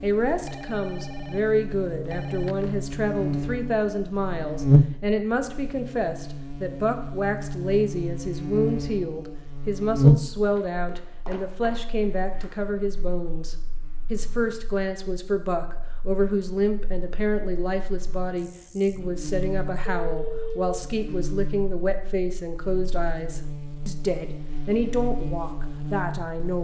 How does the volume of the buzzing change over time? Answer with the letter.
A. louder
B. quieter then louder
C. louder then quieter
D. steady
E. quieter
B.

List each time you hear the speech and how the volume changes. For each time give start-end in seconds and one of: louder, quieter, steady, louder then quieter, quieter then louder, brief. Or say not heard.
0.0-26.5 steady.